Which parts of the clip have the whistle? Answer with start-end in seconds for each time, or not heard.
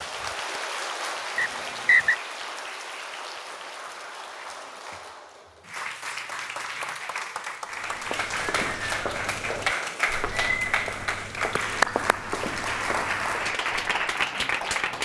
1.4-2.1.